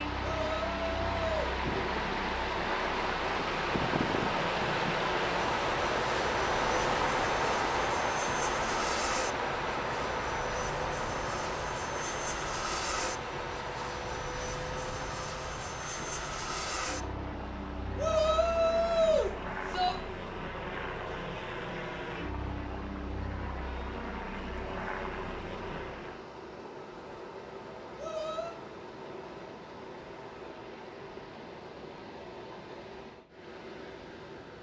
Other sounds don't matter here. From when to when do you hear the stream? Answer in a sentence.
You can hear the stream from 0.0 to 34.5 s.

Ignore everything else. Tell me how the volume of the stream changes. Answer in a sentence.
The volume of the stream goes down.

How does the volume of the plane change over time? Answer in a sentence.
The volume of the plane stays about the same.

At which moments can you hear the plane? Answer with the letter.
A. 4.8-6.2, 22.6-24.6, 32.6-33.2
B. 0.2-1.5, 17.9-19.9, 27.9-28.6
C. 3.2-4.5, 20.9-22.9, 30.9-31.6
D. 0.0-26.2
D.